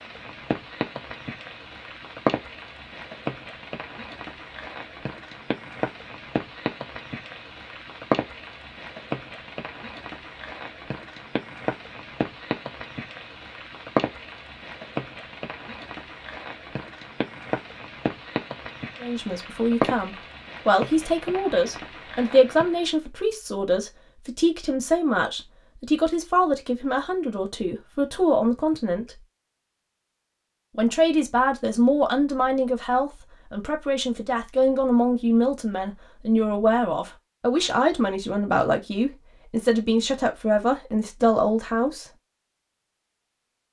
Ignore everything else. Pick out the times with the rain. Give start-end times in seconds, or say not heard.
0.0-23.1.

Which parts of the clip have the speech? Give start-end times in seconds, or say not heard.
19.0-29.2, 30.8-42.0.